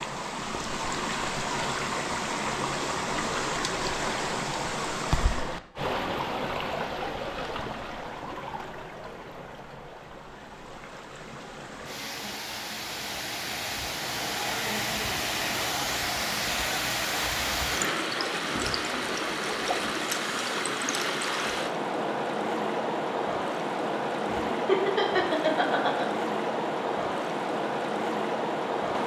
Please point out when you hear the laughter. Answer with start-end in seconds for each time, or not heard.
24.2-26.1.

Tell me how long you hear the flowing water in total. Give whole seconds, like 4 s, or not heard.
29 s.